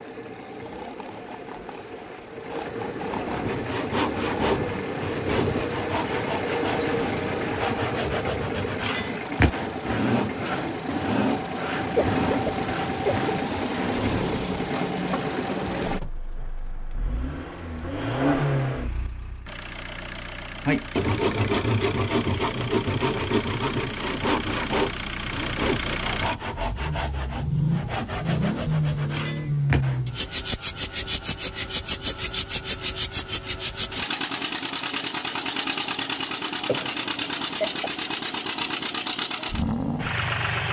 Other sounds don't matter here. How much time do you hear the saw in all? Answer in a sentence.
The saw can be heard for 20 seconds in total.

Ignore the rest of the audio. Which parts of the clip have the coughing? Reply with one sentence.
The coughing can be heard from 11.9 to 13.3 s and from 36.6 to 37.9 s.